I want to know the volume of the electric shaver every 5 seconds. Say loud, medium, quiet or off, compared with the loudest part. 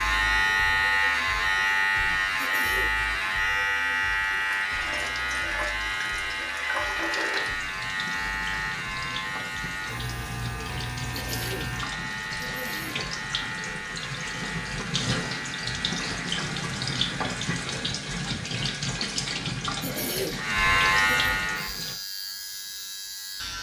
loud, medium, medium, quiet, loud.